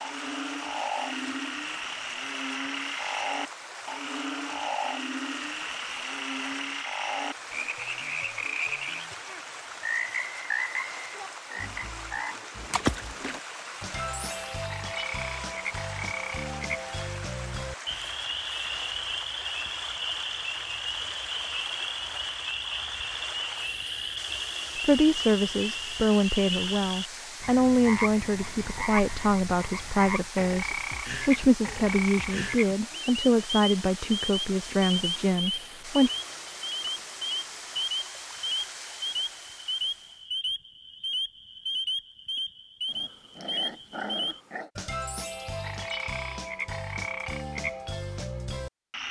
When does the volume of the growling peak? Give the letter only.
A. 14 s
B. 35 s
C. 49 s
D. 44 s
D.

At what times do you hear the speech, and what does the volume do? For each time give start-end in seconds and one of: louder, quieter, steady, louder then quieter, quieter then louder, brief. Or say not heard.
24.8-36.1 steady.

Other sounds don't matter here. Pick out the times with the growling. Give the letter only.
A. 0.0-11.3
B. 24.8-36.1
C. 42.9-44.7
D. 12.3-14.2
C.